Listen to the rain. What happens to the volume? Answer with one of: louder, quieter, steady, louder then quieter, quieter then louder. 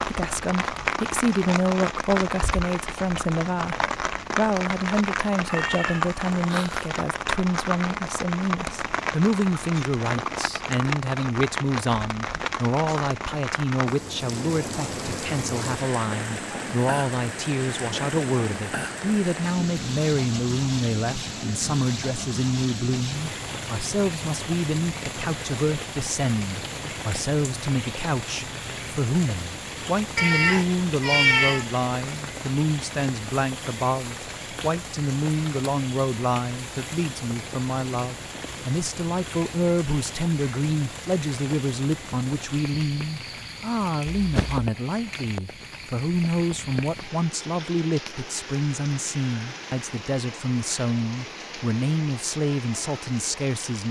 quieter.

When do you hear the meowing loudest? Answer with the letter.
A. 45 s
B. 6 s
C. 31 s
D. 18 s
C.